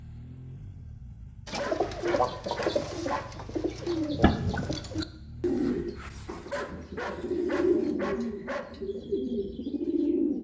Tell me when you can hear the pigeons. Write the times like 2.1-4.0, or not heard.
1.4-10.3.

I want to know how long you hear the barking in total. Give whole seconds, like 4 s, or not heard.
4 s.